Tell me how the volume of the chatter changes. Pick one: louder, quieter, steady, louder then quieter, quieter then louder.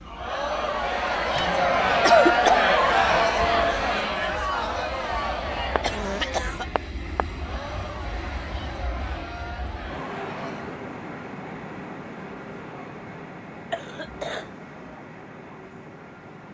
quieter.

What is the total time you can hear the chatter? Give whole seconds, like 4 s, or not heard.
11 s.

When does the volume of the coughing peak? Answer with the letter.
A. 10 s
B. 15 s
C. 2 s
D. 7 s
C.